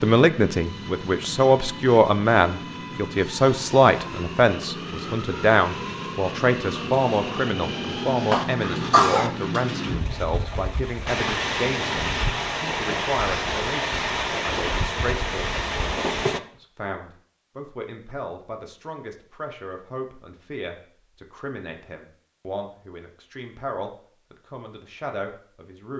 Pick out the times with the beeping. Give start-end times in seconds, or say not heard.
not heard.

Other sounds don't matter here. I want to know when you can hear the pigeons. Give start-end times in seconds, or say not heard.
not heard.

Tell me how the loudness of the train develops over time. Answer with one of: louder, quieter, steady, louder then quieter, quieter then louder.
louder.